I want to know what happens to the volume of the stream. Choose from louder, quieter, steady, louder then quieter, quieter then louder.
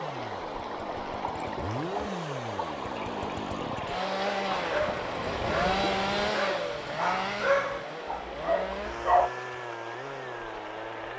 quieter.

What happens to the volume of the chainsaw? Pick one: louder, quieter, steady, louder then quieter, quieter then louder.
louder then quieter.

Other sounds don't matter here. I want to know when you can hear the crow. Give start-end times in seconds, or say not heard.
not heard.